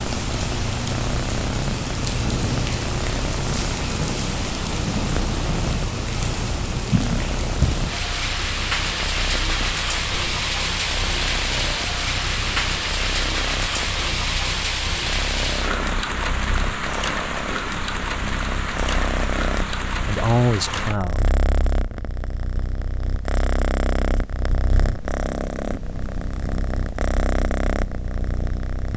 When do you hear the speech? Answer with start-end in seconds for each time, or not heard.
20.0-21.3.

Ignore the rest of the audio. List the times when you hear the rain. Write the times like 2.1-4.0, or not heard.
0.0-21.0.